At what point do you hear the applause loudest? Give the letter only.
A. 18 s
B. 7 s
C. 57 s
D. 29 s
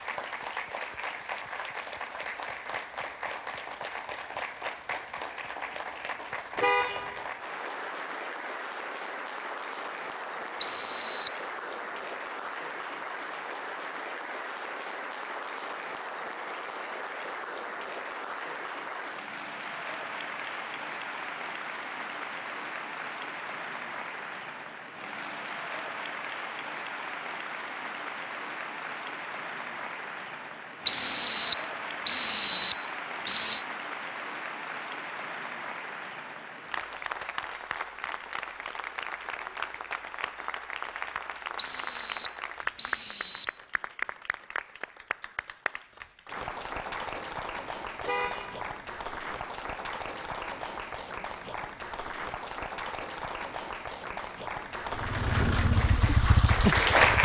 C.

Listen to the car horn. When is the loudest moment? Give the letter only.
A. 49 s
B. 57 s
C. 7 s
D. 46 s
C.